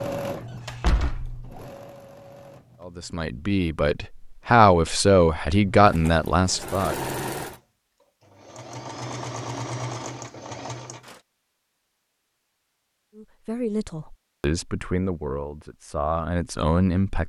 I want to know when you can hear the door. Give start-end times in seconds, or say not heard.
0.2-1.4.